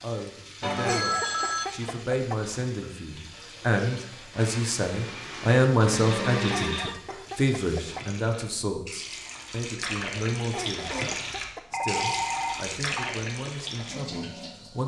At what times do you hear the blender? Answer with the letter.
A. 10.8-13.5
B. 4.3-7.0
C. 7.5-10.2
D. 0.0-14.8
B.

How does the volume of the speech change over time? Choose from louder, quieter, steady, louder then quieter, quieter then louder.
louder then quieter.